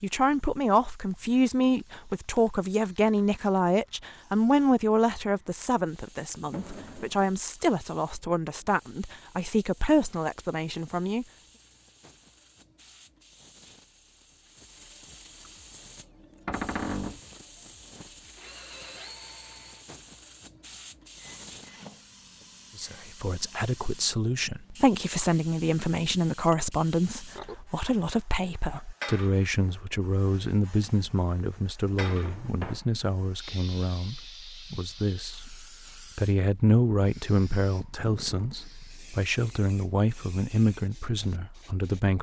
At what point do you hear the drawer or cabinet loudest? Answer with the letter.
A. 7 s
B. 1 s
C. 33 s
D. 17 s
D.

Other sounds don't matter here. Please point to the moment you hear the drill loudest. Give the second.
19 s.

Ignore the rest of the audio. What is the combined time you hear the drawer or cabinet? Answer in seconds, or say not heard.
3 s.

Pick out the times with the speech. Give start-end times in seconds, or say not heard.
0.0-11.2, 22.8-42.1.